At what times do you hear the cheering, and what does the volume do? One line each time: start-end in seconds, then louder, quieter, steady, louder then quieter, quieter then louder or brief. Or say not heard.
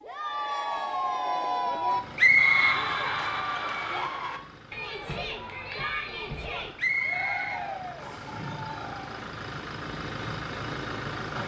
0.0-9.2 quieter.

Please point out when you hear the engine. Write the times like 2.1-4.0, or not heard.
1.6-11.4.